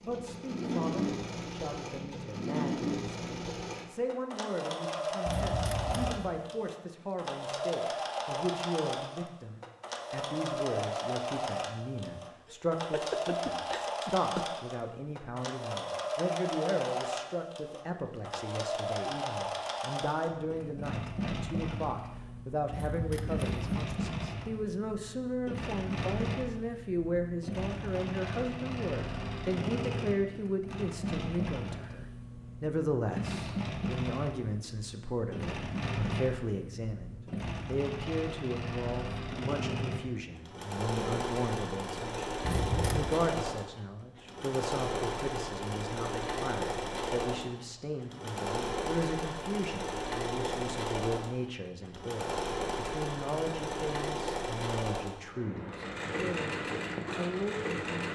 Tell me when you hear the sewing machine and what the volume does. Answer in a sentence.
The sewing machine can be heard from 0.0 to 58.1 s, at a steady volume.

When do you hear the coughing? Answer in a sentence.
The coughing can be heard from 12.4 to 14.4 s.